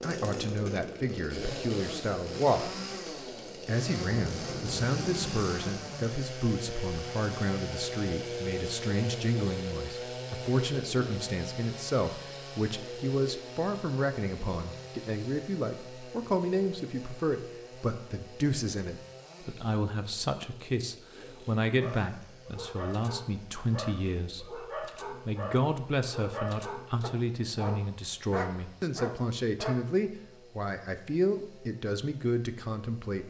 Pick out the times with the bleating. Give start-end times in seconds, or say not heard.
not heard.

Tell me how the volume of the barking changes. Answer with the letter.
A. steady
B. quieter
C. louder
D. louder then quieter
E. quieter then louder
C.